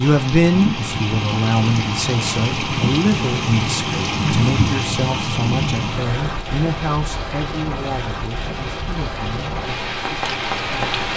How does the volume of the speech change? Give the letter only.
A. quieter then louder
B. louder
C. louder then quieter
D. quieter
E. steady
D.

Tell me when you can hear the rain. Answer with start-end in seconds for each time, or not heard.
0.0-11.1.